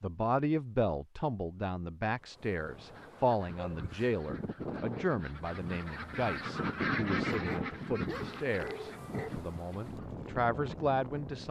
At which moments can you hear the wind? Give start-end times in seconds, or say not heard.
2.1-11.4.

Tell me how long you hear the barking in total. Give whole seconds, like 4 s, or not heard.
3 s.